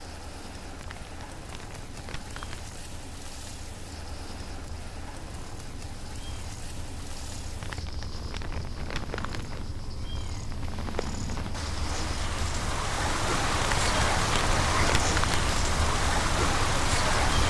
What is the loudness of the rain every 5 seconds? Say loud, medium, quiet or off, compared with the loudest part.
quiet, quiet, loud, loud.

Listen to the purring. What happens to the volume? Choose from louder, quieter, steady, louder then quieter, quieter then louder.
louder.